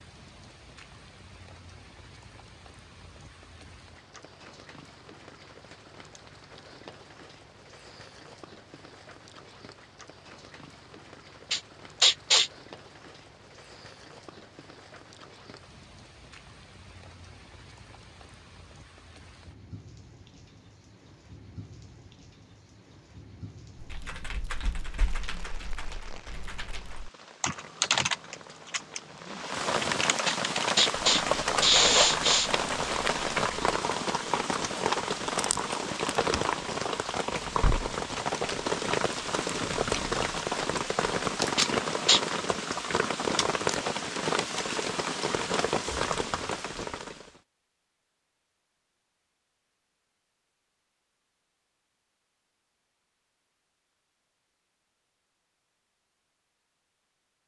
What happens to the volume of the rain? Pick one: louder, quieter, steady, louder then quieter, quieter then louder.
louder.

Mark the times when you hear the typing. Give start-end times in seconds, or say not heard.
23.8-33.8.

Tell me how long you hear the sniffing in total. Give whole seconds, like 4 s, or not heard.
4 s.